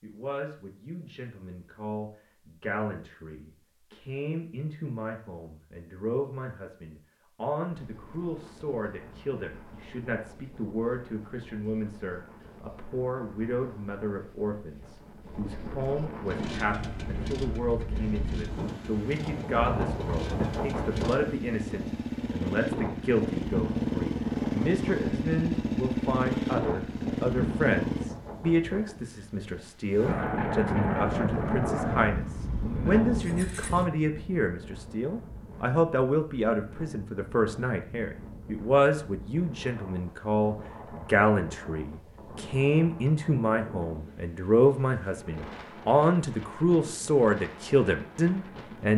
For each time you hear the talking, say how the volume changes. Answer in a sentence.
The talking can be heard from 0.0 to 48.9 s, getting louder.